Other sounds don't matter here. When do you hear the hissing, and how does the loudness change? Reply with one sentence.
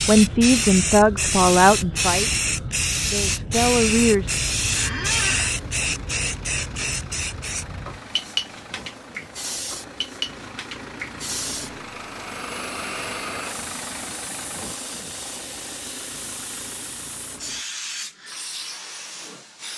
You can hear the hissing from 0.0 to 19.7 s, getting quieter.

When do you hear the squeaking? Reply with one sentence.
The squeaking can be heard from 4.8 to 5.5 s.